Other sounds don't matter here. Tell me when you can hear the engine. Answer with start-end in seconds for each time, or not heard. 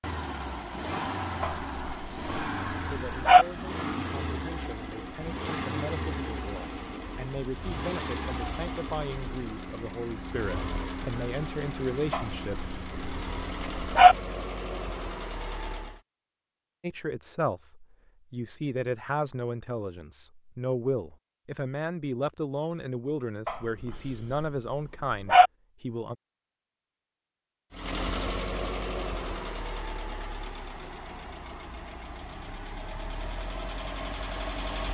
0.0-16.0, 27.7-34.8.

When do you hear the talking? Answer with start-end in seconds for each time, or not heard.
2.9-12.7, 16.8-26.1.